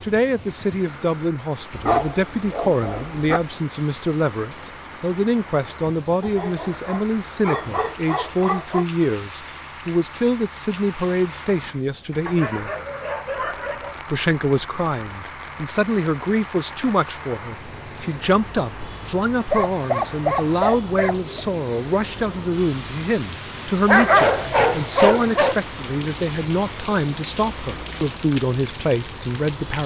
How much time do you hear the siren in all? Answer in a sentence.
The siren can't be heard in this clip.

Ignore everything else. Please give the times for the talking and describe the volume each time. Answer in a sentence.
You can hear the talking from 0.0 to 12.7 s, at a steady volume; and from 14.1 to 29.8 s, at a steady volume.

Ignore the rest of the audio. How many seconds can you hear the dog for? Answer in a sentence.
You can hear the dog for 10 seconds altogether.